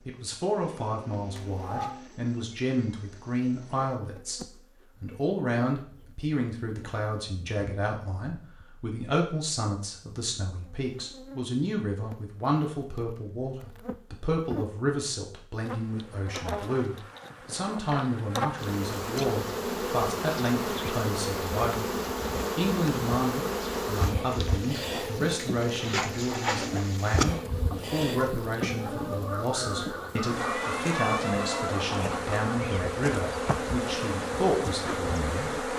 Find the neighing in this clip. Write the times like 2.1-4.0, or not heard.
not heard.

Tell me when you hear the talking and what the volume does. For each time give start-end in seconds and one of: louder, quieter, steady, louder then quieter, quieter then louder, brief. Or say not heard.
0.1-21.9 steady
22.6-35.7 steady.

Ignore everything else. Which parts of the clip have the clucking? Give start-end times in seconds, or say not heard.
24.2-32.4.